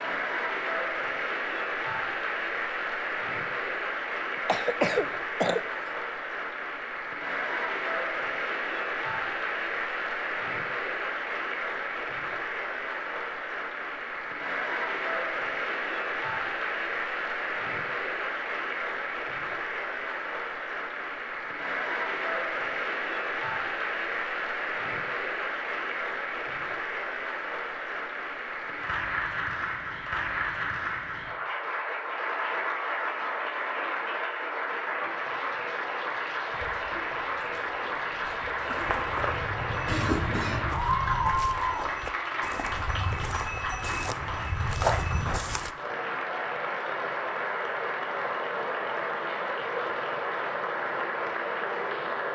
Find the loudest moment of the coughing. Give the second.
5 s.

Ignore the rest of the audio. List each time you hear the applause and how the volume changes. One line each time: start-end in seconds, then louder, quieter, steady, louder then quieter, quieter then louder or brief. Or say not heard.
0.0-52.2 steady.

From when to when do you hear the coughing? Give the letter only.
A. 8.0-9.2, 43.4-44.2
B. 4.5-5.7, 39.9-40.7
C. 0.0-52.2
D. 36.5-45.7
B.